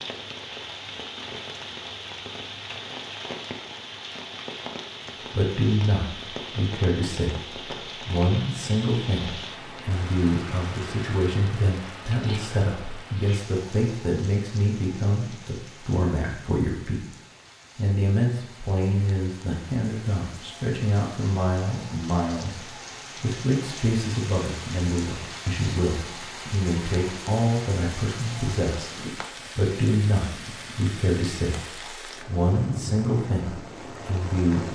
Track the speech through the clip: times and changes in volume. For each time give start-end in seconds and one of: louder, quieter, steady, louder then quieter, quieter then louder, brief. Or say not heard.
5.3-17.1 steady
17.8-34.7 steady.